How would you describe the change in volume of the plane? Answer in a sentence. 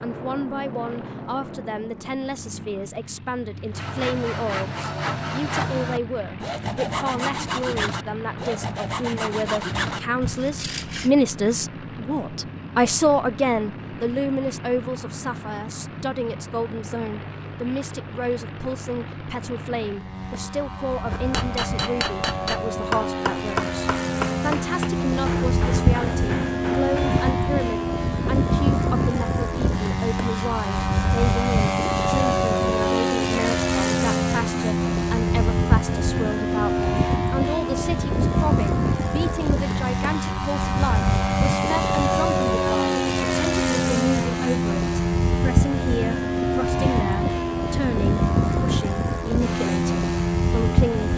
The loudness of the plane goes up.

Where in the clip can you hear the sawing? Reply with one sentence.
The sawing can be heard from 3.7 to 11.1 s.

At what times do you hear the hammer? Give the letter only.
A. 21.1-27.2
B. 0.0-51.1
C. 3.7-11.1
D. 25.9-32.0
A.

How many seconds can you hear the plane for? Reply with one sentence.
The plane can be heard for 51 seconds in total.